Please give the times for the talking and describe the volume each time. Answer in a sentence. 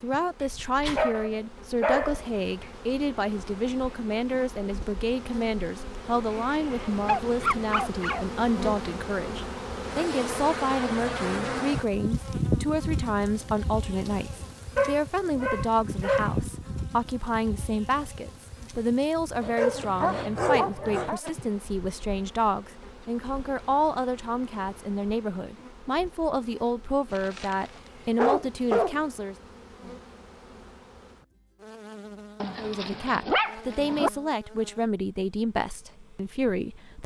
You can hear the talking from 0.0 to 29.4 s, at a steady volume; and from 32.5 to 37.0 s, at a steady volume.